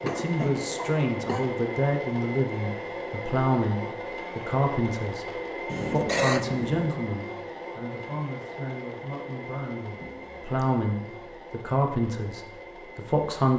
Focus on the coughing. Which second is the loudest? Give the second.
6 s.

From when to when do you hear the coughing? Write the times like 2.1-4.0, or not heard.
0.1-1.4, 5.7-6.9, 9.9-10.7.